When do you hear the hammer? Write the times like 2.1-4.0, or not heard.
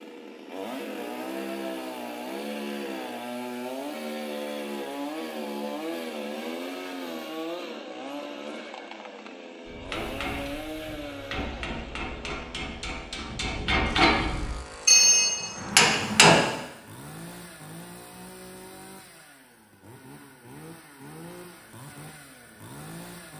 9.7-16.4.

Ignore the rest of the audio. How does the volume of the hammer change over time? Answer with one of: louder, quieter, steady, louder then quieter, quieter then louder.
louder.